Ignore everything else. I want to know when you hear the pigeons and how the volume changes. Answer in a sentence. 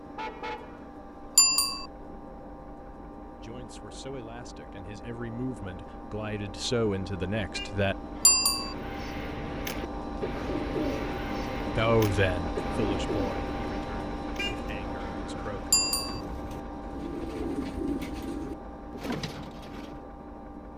The pigeons can be heard from 8.5 to 20.1 s, getting quieter then louder.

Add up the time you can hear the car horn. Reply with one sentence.
You can hear the car horn for 2 seconds altogether.